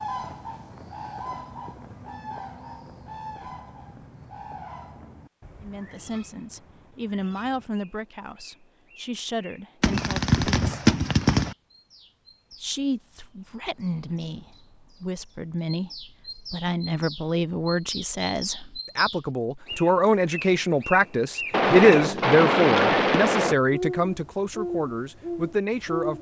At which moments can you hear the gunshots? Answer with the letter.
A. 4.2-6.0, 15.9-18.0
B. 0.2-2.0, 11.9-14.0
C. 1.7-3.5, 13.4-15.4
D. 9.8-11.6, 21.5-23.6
D.